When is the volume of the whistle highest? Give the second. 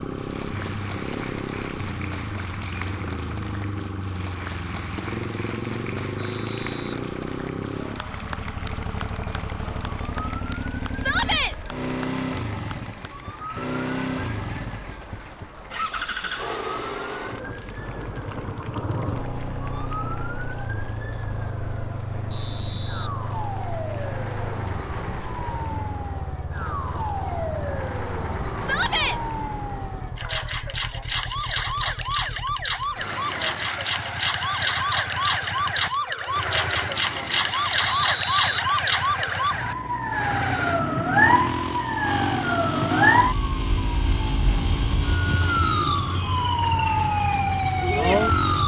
38 s.